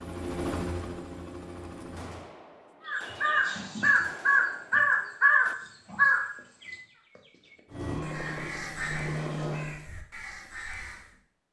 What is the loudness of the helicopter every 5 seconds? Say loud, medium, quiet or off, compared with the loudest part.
loud, loud, off.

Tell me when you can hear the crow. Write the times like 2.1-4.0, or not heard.
2.9-11.2.